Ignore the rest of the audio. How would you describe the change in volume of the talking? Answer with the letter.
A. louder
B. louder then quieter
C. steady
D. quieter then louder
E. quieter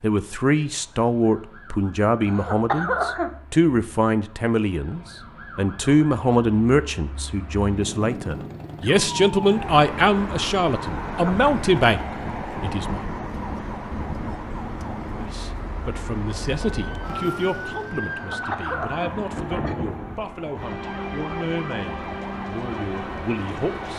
E.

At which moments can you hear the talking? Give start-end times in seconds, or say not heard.
0.0-13.1, 15.1-23.9.